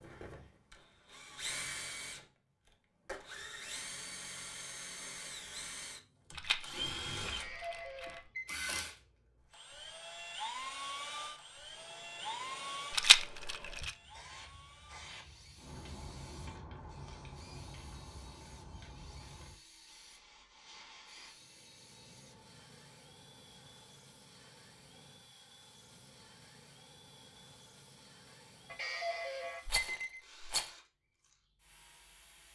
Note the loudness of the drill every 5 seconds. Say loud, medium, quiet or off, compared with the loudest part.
loud, loud, loud, quiet, quiet, quiet, quiet.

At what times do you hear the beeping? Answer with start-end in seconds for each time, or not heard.
7.3-8.7, 28.6-30.2.